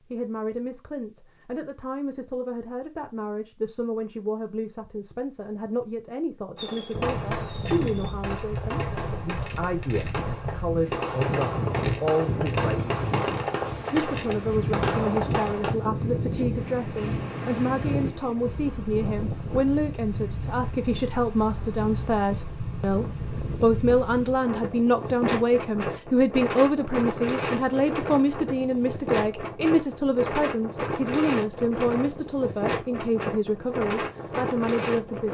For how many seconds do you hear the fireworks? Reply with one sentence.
The fireworks can be heard for 9 seconds in total.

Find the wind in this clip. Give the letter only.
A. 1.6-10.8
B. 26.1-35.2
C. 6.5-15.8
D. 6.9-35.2
D.